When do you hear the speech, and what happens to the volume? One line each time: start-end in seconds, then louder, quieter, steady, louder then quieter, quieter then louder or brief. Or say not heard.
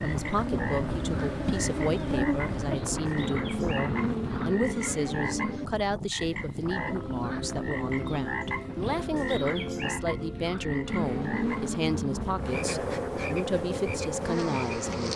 0.0-15.1 steady.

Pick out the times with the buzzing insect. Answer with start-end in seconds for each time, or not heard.
0.0-5.6, 10.8-15.1.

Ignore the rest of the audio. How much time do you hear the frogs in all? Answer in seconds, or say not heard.
15 s.